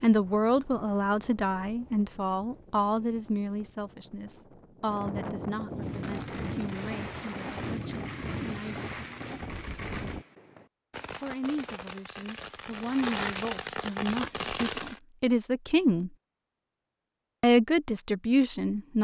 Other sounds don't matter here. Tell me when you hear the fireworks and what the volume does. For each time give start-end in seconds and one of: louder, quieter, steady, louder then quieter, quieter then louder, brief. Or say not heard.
5.8-15.0 louder.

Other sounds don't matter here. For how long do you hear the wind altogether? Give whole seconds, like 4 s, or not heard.
10 s.